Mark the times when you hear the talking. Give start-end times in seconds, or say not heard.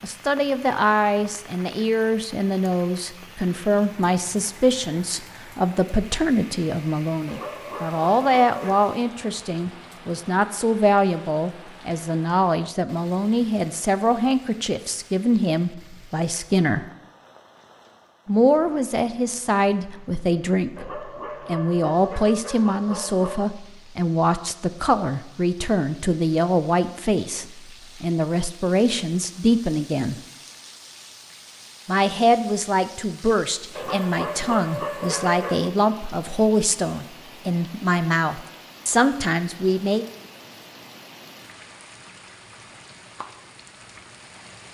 0.0-16.9, 18.2-30.1, 31.9-40.0.